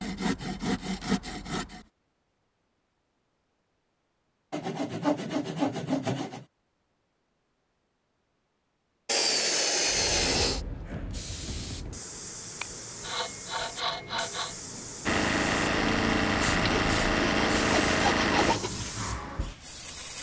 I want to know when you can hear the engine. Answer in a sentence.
The engine can be heard from 15.1 to 18.6 s.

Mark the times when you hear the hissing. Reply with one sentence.
You can hear the hissing from 9.8 to 20.1 s.